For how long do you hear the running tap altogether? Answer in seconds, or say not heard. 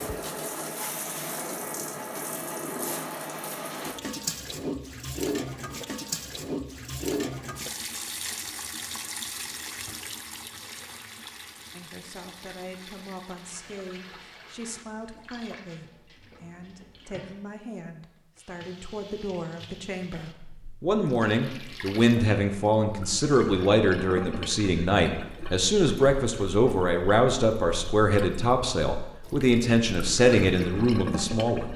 32 s.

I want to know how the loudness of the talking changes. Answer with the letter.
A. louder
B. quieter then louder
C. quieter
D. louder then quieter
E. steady
A.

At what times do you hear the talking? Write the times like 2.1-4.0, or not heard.
11.7-31.7.